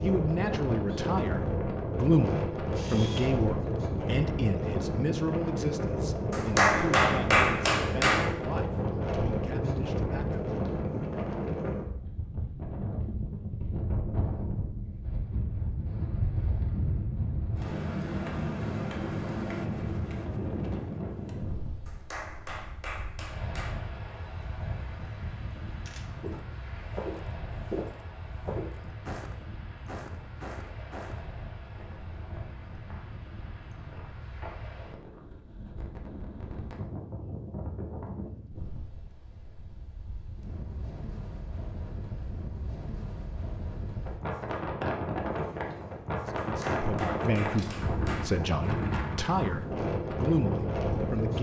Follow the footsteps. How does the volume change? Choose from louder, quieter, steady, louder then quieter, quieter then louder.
quieter.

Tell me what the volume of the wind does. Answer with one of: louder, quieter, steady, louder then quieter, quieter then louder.
quieter then louder.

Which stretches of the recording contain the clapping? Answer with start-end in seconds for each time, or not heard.
6.3-8.3, 21.9-23.8, 46.4-48.4.